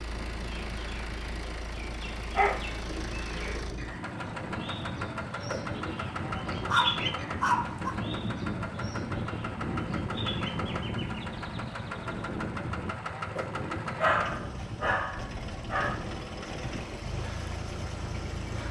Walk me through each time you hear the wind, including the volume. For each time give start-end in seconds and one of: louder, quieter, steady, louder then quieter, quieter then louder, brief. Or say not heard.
0.0-18.6 louder then quieter.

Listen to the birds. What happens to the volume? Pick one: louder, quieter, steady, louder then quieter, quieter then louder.
louder then quieter.